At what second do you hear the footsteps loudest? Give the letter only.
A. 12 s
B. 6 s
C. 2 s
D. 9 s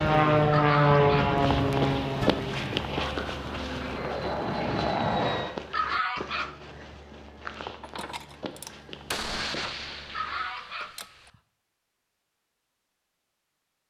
C.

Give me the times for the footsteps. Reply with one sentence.
The footsteps can be heard from 1.3 to 10.6 s.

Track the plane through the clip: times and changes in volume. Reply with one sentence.
You can hear the plane from 0.0 to 5.5 s, getting quieter then louder.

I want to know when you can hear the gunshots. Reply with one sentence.
You can hear the gunshots from 7.8 to 11.3 s.